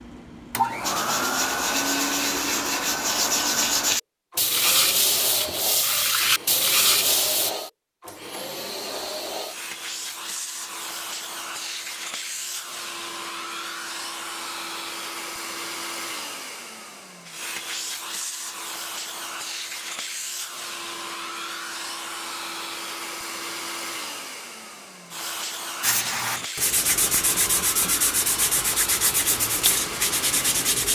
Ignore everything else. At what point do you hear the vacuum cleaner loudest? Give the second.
1 s.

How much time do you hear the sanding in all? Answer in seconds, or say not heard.
12 s.